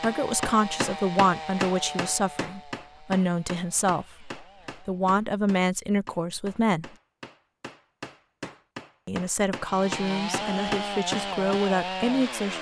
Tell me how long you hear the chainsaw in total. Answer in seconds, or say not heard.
8 s.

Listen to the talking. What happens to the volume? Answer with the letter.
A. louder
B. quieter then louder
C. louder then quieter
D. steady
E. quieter
D.